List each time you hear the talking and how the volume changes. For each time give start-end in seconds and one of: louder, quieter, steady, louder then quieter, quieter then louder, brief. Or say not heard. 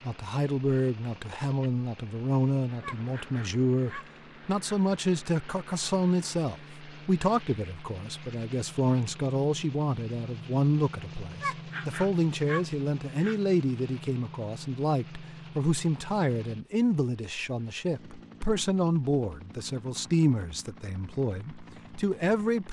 0.0-22.6 steady.